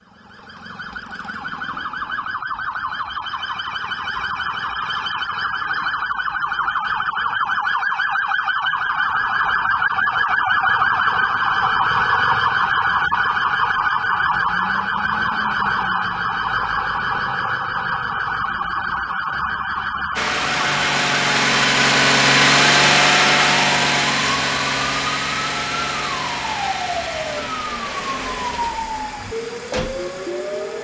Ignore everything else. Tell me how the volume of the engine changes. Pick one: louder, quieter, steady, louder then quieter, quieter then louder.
quieter.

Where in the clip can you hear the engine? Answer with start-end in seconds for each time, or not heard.
20.1-30.8.